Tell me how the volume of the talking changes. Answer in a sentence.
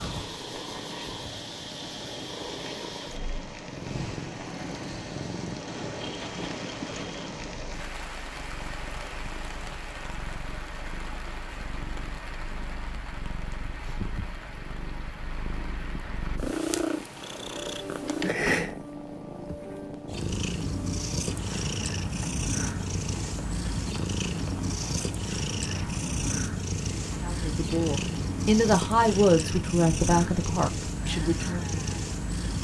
The volume of the talking goes up, then down.